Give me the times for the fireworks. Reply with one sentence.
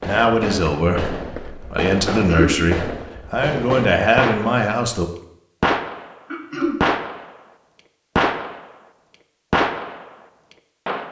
You can hear the fireworks from 0.0 to 4.7 s, from 5.6 to 6.2 s, from 6.8 to 7.3 s, from 8.2 to 8.7 s and from 9.5 to 11.0 s.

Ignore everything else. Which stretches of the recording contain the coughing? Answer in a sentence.
The coughing can be heard from 2.0 to 2.5 s and from 6.3 to 6.8 s.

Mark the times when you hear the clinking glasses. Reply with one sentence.
You can't hear the clinking glasses here.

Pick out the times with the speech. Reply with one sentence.
The speech can be heard from 0.0 to 5.0 s.